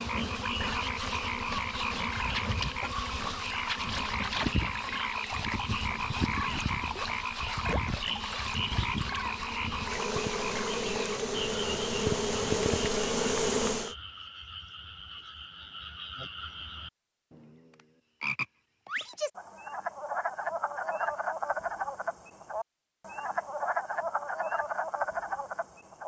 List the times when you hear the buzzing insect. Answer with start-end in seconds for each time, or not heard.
0.0-13.9.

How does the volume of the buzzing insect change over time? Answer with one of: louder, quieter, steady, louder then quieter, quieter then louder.
louder.